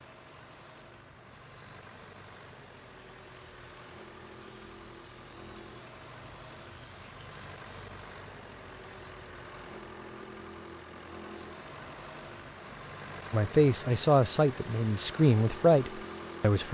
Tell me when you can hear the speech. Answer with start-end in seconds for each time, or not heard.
13.3-16.6.